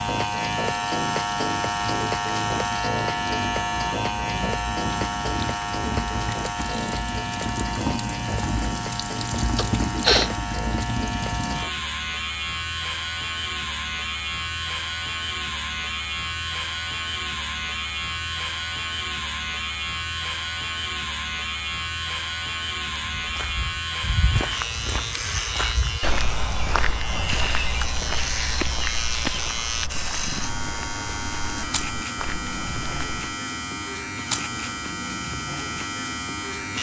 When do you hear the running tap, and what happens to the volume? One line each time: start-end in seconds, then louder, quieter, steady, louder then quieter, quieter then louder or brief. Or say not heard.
0.1-11.7 louder.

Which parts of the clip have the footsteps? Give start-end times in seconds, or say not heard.
23.1-33.1.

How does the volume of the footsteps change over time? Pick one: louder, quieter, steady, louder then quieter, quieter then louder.
quieter.